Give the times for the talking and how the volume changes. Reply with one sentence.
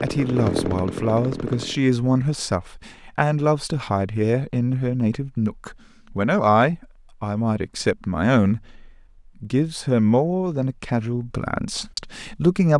You can hear the talking from 0.0 to 12.7 s, at a steady volume.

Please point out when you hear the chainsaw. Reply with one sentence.
The chainsaw can be heard from 0.0 to 1.8 s.